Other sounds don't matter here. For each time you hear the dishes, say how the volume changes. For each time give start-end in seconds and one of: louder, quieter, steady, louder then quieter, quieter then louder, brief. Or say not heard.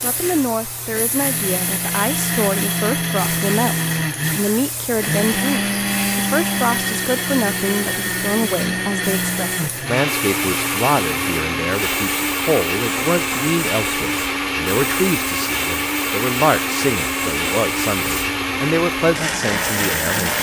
not heard.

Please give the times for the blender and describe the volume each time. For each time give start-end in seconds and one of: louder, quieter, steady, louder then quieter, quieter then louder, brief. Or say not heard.
0.0-20.3 steady.